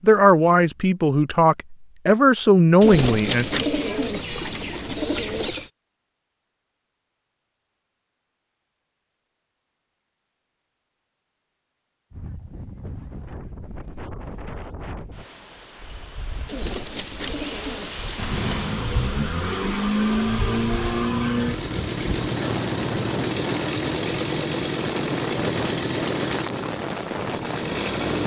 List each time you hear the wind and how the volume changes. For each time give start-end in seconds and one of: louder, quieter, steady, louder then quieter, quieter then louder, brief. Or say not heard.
12.1-28.2 louder.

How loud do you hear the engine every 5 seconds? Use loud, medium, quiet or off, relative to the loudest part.
off, off, off, loud, loud, loud.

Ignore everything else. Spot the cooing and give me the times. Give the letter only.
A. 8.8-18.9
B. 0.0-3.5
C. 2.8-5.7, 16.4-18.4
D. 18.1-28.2
C.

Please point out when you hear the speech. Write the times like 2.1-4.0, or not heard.
0.0-3.5.